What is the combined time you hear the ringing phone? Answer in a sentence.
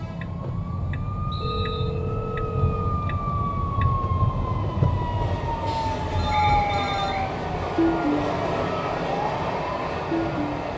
You can hear the ringing phone for 3 seconds altogether.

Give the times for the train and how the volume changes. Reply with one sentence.
You can hear the train from 0.0 to 10.7 s, getting louder.